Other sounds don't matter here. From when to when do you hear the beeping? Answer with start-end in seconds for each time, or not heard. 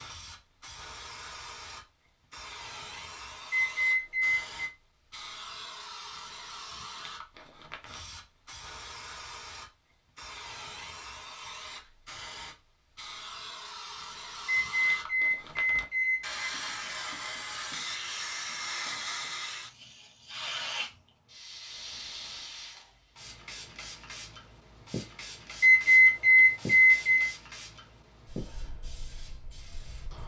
3.5-4.5, 14.4-16.4, 25.6-27.3.